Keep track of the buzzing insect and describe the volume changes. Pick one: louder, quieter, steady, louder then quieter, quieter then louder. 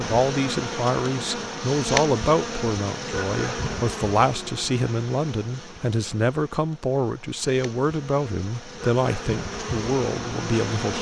quieter then louder.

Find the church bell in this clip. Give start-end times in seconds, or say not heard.
not heard.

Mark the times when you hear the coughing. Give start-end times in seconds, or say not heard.
not heard.